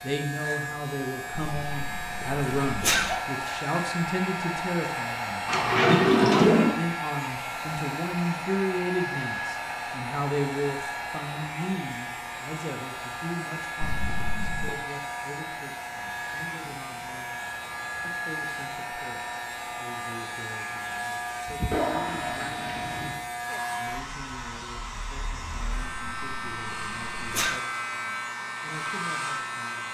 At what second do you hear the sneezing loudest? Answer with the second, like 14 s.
3 s.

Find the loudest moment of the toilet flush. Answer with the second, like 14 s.
6 s.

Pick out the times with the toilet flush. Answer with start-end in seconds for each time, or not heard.
5.5-6.8, 21.7-23.2.